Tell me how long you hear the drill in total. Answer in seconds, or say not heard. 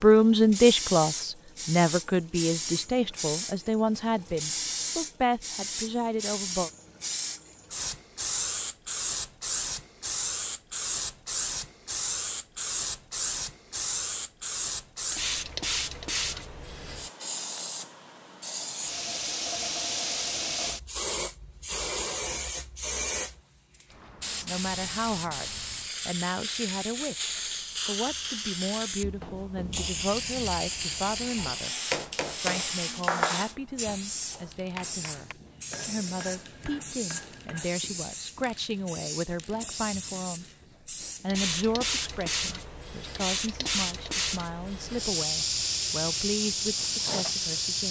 not heard.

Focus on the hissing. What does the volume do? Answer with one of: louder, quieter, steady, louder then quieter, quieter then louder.
steady.